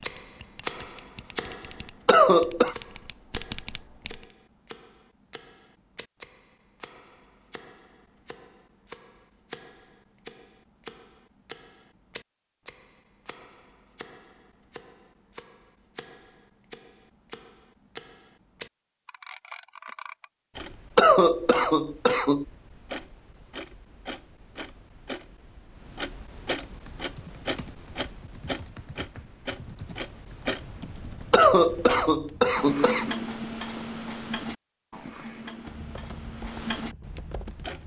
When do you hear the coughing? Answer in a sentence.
The coughing can be heard from 2.0 to 2.8 s, from 20.9 to 22.4 s and from 31.3 to 33.1 s.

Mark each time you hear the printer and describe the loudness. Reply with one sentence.
The printer can't be heard in this clip.